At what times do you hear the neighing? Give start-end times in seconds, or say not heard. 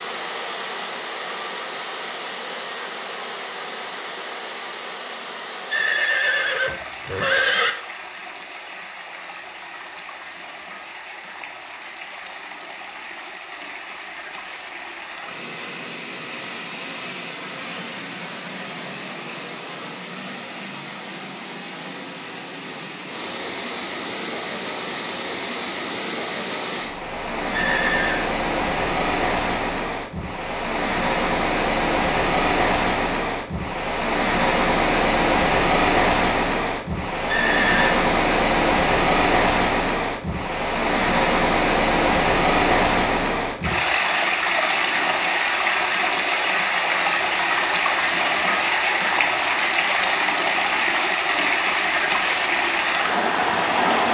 5.7-7.7, 27.5-28.2, 37.2-37.9.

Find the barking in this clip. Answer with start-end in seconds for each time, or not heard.
not heard.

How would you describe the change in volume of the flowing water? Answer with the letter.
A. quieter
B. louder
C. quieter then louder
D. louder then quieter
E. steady
B.